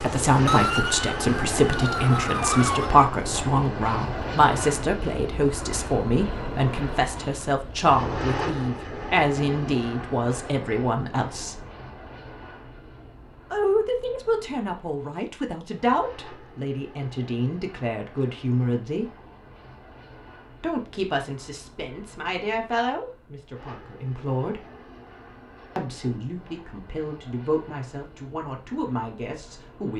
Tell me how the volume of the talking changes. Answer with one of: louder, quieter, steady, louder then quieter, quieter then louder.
quieter.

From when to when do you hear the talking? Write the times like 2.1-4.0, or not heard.
0.0-11.7, 13.5-19.1, 20.6-24.6, 25.8-29.9.